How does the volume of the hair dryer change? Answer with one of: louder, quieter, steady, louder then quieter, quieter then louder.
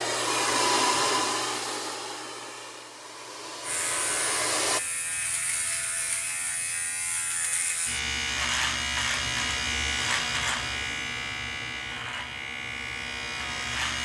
quieter then louder.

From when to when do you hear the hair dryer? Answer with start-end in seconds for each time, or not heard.
0.0-4.8.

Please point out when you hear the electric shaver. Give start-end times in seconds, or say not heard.
3.6-14.0.